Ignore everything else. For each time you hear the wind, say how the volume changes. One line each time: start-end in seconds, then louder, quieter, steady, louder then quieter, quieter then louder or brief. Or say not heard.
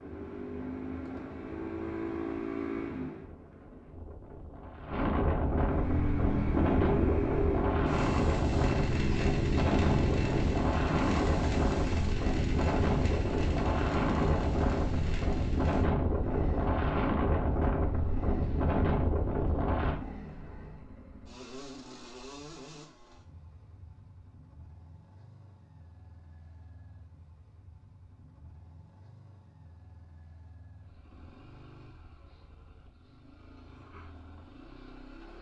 0.0-20.0 louder.